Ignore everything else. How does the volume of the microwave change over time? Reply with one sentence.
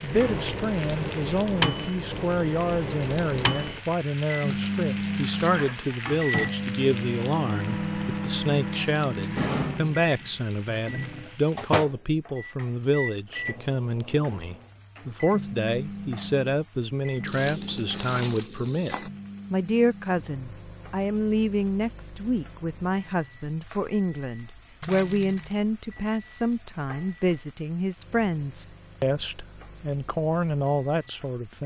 The loudness of the microwave goes down.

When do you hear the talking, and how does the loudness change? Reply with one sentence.
You can hear the talking from 0.0 to 31.6 s, at a steady volume.